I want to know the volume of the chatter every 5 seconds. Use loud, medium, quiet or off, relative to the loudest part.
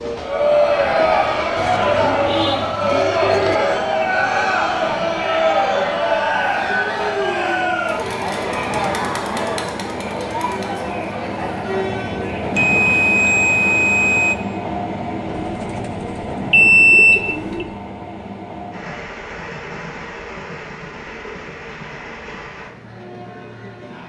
loud, loud, medium, off, off.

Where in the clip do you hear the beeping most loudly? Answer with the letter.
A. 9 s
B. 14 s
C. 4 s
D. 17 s
D.